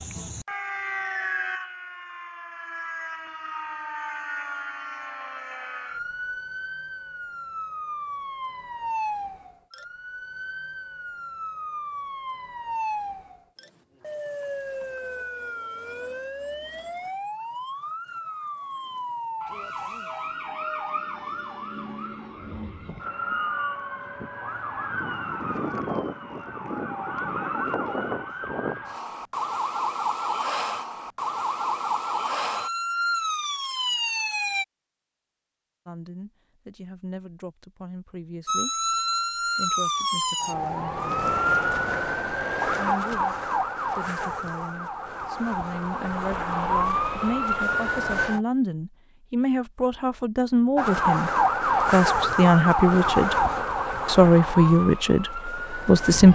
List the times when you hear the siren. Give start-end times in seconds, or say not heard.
0.0-34.6, 38.5-48.4, 50.8-56.3.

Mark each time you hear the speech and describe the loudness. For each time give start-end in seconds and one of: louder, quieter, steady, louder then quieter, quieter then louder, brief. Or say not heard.
35.9-41.0 steady
42.7-53.5 louder
54.0-56.3 brief.